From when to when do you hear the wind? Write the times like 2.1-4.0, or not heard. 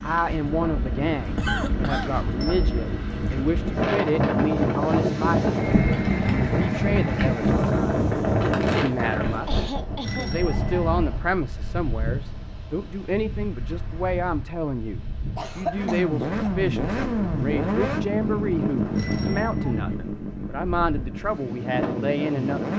0.0-22.7.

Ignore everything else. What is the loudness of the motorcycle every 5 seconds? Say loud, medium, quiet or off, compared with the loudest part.
medium, off, off, loud, medium.